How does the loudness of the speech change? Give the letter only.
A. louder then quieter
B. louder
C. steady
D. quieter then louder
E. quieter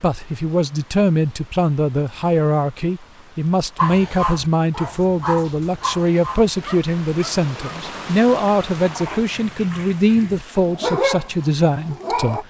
C.